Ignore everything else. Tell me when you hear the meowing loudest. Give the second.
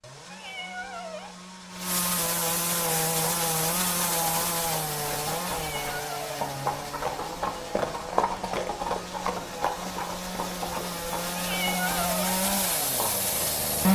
12 s.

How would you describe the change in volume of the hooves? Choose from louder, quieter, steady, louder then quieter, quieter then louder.
louder then quieter.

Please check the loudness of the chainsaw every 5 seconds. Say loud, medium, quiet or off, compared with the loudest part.
loud, medium, loud.